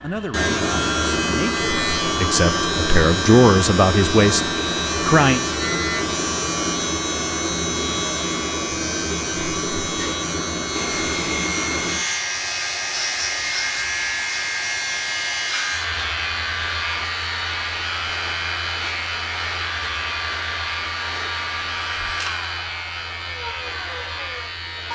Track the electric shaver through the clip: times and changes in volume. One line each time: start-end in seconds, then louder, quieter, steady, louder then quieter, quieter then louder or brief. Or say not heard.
0.0-24.9 quieter.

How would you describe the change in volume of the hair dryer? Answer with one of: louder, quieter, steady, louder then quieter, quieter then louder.
steady.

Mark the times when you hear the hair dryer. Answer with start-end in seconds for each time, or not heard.
10.7-24.9.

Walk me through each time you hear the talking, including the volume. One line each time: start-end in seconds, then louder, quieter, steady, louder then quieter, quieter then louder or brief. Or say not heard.
0.0-5.4 louder.